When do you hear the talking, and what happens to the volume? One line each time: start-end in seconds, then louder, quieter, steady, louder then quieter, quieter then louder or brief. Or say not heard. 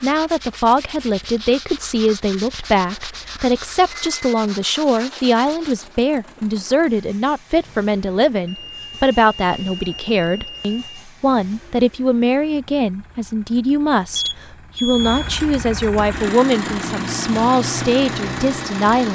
0.0-19.1 steady.